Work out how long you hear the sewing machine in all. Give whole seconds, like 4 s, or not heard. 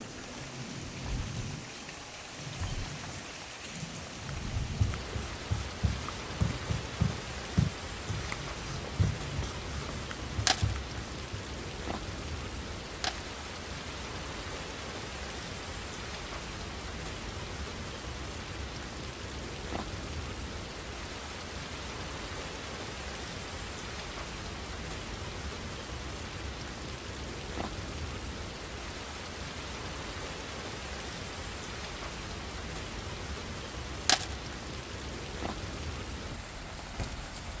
not heard.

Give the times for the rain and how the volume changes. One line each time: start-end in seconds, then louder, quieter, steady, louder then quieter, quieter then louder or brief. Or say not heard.
0.0-37.5 steady.